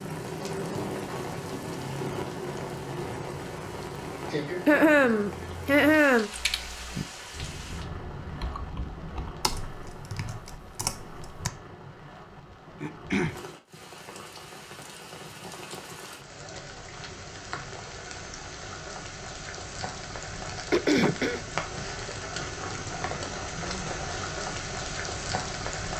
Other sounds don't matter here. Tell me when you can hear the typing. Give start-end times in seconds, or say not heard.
6.3-11.5.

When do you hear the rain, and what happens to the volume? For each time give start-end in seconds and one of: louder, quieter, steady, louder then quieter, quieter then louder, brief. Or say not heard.
0.0-25.9 quieter then louder.